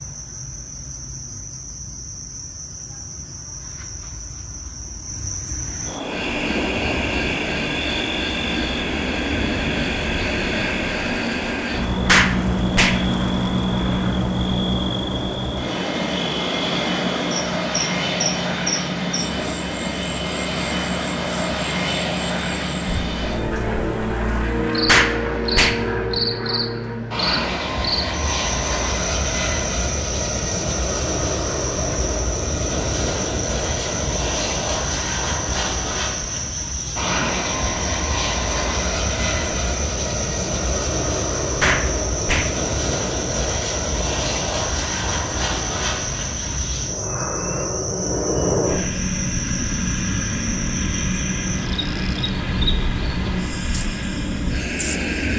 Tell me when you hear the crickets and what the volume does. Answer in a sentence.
The crickets can be heard from 0.0 to 55.3 s, at a steady volume.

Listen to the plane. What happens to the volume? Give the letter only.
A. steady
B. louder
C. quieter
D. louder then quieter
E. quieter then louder
A.